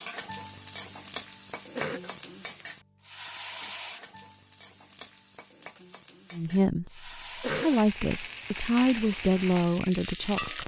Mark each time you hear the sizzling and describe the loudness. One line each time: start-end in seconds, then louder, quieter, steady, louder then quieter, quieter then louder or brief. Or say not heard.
0.0-10.6 quieter then louder.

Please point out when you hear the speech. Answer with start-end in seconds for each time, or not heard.
6.3-10.6.